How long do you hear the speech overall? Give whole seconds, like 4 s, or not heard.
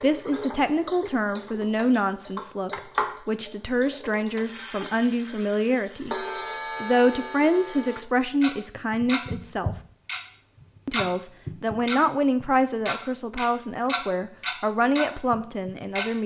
15 s.